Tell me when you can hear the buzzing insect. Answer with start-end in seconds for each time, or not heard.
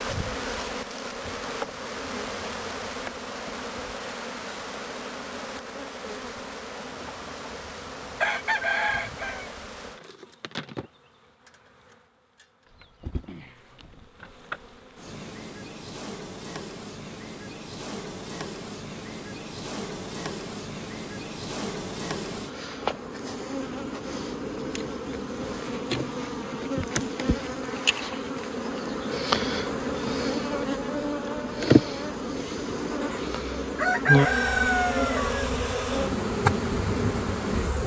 0.0-37.8.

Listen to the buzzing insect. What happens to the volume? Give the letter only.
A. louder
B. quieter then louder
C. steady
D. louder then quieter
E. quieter
B.